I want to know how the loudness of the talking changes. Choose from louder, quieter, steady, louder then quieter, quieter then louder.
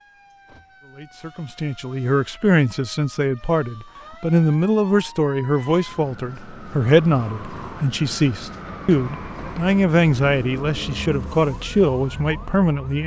steady.